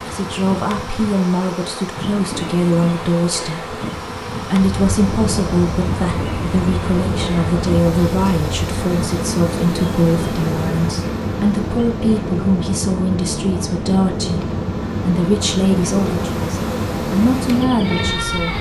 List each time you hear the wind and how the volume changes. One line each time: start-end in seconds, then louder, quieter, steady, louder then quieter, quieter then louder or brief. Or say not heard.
4.5-18.5 steady.